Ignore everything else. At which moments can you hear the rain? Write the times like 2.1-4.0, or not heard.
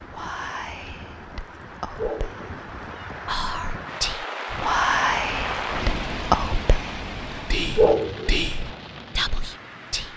0.0-10.1.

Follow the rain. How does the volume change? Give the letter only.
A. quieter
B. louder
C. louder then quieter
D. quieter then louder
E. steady
C.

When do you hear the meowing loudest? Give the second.
8 s.